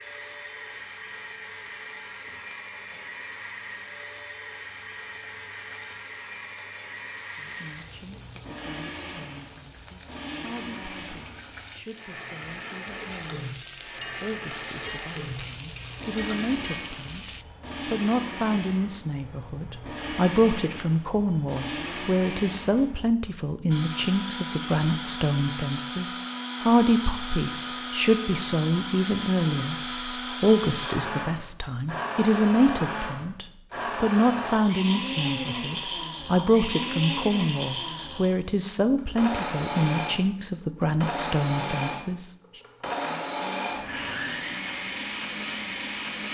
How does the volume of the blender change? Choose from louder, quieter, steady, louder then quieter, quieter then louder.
louder.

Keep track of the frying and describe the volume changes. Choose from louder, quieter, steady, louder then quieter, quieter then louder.
louder.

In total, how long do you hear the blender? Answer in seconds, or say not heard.
46 s.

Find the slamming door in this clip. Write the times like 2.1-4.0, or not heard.
not heard.